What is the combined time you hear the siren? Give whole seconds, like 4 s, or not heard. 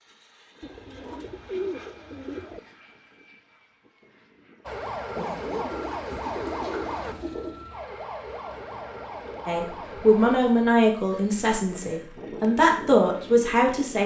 6 s.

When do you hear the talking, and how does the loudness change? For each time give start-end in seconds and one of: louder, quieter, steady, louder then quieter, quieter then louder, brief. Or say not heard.
9.4-14.0 quieter then louder.